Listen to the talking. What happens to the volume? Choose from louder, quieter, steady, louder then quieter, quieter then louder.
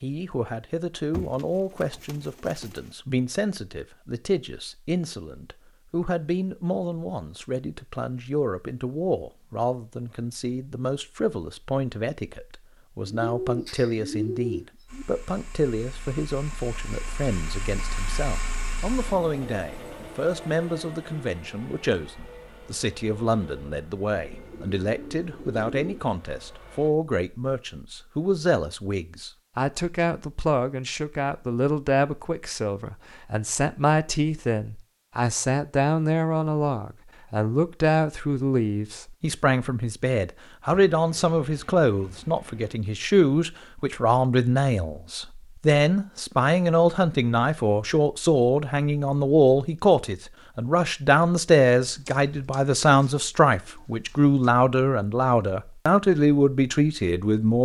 louder.